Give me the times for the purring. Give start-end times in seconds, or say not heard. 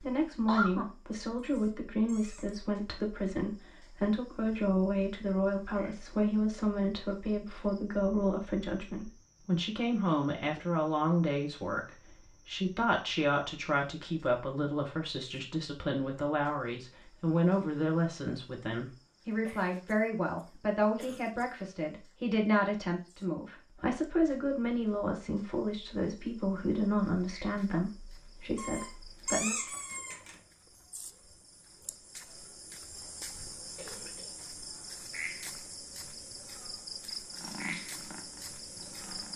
37.3-39.3.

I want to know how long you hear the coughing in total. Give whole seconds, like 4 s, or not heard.
4 s.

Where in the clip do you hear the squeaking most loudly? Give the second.
29 s.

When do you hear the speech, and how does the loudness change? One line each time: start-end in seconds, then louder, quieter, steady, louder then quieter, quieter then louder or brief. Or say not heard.
0.0-29.6 steady.